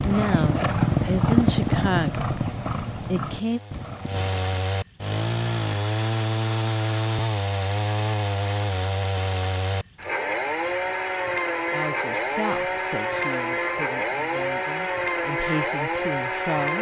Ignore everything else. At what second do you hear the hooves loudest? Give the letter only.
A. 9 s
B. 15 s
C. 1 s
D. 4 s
C.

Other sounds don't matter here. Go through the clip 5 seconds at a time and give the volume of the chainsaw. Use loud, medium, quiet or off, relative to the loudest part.
medium, loud, loud, loud.